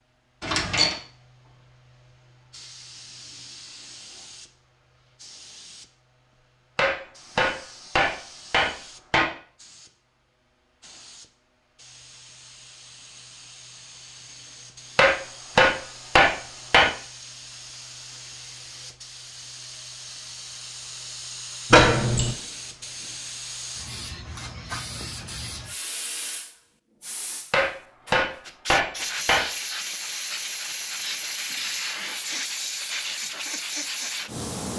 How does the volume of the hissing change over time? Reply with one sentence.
The loudness of the hissing goes up.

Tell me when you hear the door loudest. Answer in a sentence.
The loudest moment of the door is at 22 seconds.